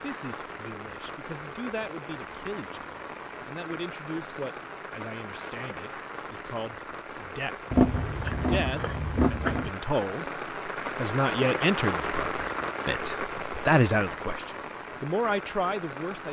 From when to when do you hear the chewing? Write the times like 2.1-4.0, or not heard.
7.7-9.7.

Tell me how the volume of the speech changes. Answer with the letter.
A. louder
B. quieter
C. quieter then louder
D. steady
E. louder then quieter
A.